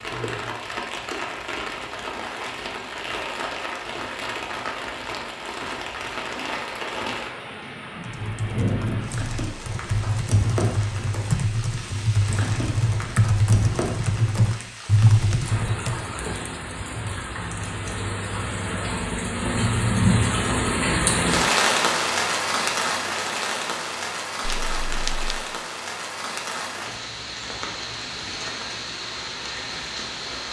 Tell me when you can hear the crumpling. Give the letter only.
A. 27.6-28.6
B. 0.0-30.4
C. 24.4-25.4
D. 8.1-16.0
C.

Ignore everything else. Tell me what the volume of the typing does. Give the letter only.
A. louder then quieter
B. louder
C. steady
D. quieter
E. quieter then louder
B.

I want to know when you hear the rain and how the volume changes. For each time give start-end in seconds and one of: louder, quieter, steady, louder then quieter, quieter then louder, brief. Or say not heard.
0.0-30.4 louder then quieter.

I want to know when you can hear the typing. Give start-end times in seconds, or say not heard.
8.1-16.0.